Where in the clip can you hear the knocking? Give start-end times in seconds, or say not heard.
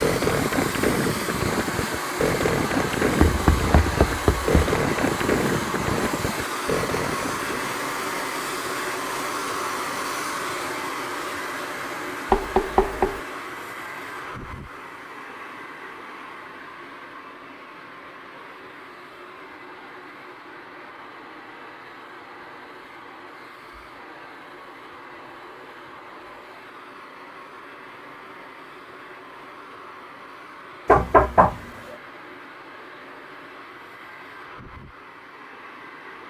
3.2-4.5, 12.3-13.2, 30.9-31.9.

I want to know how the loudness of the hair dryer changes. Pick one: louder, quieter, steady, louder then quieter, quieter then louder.
quieter.